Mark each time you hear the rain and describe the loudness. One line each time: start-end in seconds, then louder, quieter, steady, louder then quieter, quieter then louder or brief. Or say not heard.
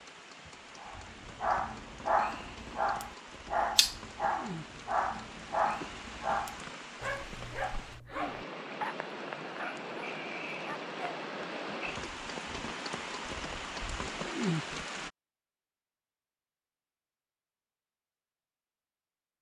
0.0-15.1 louder.